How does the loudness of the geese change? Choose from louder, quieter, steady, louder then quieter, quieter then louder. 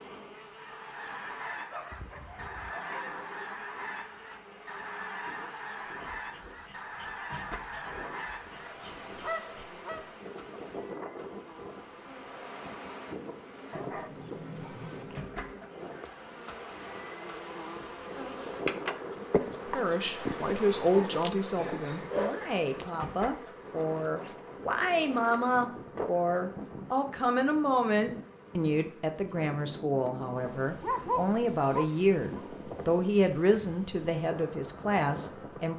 steady.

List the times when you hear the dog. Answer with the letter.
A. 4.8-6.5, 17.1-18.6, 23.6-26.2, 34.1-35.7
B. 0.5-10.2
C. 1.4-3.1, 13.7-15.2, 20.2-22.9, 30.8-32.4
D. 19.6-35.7
C.